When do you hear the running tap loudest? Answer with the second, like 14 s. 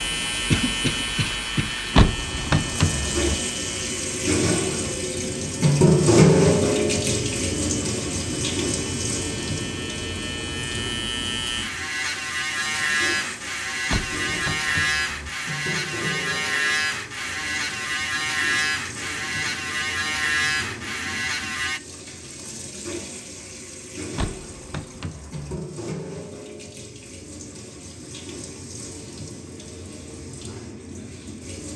6 s.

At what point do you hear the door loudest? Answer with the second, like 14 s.
2 s.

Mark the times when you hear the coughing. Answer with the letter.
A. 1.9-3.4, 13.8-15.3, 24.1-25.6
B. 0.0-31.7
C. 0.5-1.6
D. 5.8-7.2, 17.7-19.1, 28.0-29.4
C.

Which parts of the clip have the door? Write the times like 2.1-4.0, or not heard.
1.9-3.4, 13.8-15.3, 24.1-25.6.